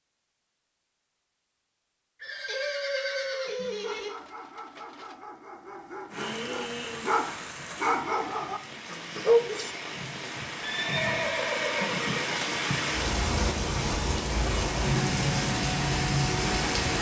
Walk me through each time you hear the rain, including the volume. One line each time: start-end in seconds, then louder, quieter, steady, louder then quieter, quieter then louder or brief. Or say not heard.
6.1-16.9 louder.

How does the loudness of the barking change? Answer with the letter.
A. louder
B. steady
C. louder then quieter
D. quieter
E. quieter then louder
A.